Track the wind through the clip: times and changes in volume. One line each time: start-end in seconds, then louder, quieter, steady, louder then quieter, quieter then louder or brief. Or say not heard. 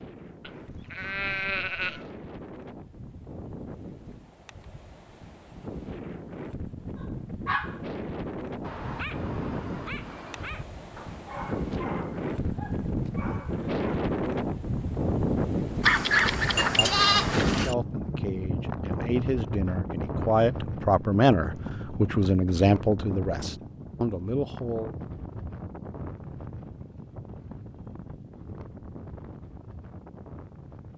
0.0-30.9 louder then quieter.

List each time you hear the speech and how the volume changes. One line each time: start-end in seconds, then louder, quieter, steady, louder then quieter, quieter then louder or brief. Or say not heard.
16.6-24.9 louder then quieter.